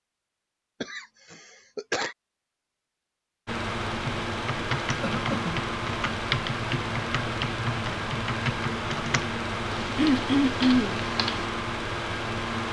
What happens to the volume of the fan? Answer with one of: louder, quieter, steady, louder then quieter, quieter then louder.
steady.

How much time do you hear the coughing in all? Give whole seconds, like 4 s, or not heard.
3 s.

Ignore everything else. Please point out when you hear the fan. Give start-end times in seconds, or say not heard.
3.5-12.6.